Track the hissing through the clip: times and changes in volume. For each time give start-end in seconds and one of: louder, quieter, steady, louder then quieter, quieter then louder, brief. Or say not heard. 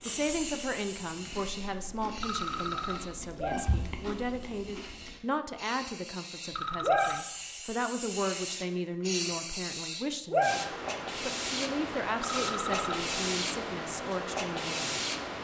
0.0-15.3 louder.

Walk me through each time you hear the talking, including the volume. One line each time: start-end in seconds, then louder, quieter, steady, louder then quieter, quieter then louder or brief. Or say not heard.
0.0-15.0 steady.